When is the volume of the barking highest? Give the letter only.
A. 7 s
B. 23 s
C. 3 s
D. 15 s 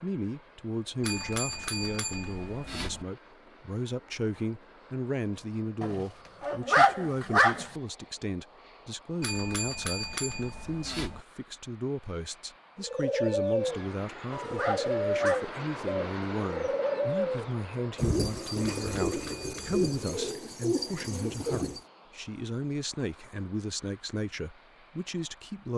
A.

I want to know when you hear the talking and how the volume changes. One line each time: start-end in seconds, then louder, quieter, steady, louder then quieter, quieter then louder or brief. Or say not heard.
0.0-25.7 steady.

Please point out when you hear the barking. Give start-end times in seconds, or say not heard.
5.8-7.7, 13.7-15.6.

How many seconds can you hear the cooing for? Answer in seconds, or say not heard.
9 s.